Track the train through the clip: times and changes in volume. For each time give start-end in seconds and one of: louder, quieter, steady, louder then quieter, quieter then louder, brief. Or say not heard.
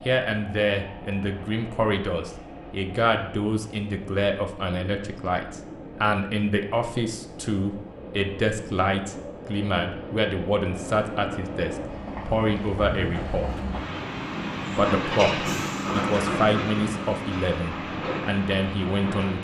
0.0-19.3 louder.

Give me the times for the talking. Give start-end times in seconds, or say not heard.
0.0-13.5, 14.8-19.3.